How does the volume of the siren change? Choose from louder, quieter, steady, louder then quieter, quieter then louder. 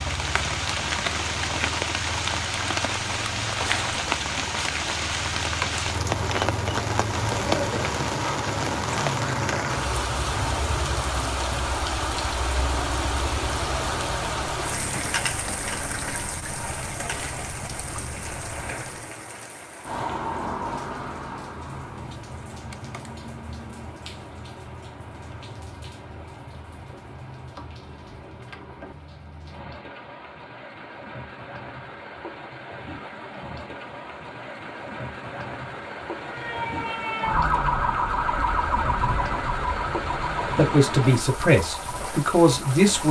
quieter.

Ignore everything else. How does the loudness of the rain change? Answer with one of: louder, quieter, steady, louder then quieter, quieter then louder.
quieter then louder.